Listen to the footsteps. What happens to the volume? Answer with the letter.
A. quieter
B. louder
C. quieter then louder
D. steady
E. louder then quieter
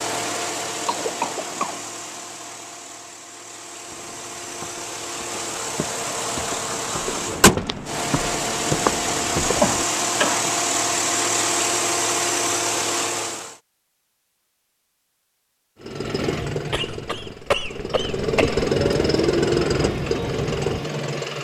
B.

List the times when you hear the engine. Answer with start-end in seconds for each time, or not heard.
0.0-13.6, 15.8-21.3.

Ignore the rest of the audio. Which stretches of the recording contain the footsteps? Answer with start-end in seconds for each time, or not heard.
3.9-10.3.